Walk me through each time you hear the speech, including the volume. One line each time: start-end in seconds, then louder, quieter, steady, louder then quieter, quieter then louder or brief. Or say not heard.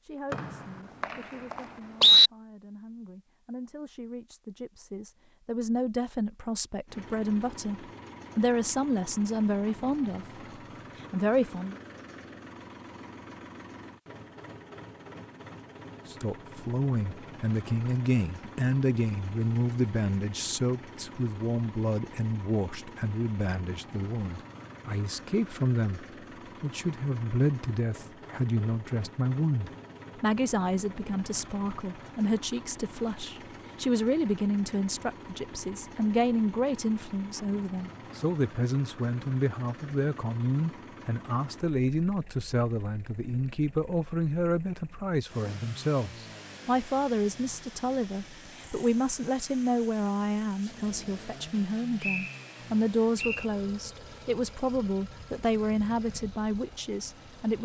0.0-10.2 louder
11.0-11.8 brief
16.1-57.6 steady.